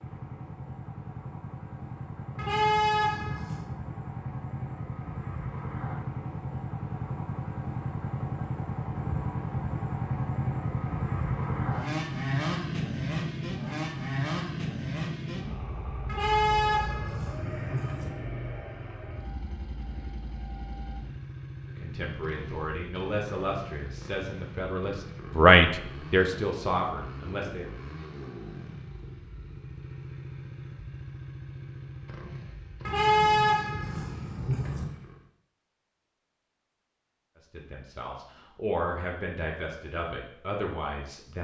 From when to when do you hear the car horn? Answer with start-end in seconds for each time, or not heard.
2.4-3.7, 16.1-18.1, 32.9-34.9.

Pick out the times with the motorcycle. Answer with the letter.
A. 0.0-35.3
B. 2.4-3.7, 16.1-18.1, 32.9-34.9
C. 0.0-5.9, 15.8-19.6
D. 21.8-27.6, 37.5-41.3
A.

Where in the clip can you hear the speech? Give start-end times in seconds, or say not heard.
21.8-27.6, 37.5-41.3.